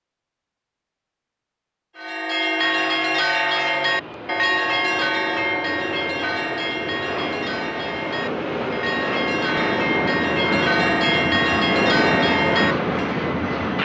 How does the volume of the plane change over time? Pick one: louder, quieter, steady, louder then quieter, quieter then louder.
louder.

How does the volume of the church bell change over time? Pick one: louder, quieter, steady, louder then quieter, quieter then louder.
quieter then louder.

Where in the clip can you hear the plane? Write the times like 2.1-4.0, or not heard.
2.5-13.7.